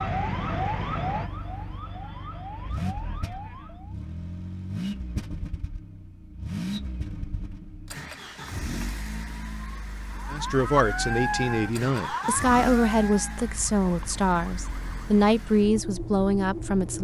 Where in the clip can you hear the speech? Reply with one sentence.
You can hear the speech from 10.3 to 16.9 s.